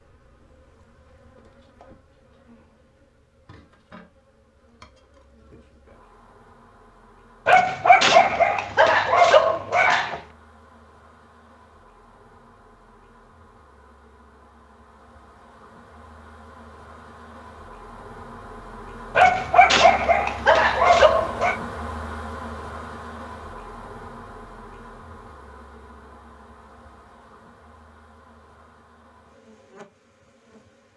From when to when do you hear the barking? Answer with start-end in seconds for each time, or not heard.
7.5-10.2, 19.1-21.6.